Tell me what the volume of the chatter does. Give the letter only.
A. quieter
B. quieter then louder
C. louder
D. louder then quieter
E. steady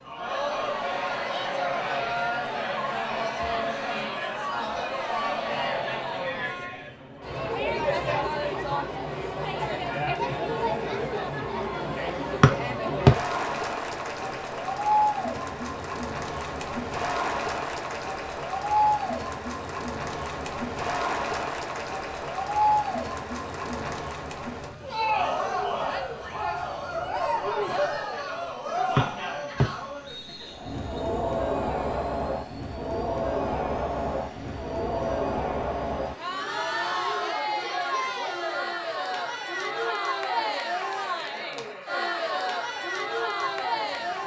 E.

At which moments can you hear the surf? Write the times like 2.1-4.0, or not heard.
not heard.